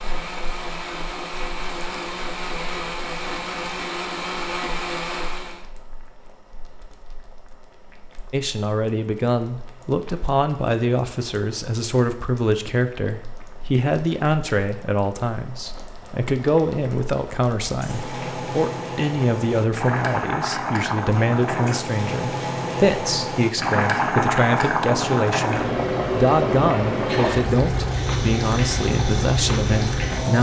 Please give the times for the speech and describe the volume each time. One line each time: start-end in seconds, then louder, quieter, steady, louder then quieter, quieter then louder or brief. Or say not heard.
8.3-30.3 steady.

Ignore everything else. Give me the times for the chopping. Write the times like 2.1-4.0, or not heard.
not heard.